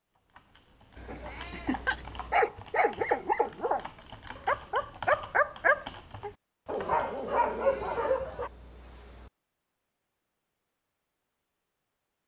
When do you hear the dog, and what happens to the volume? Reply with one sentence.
The dog can be heard from 1.1 to 8.5 s, at a steady volume.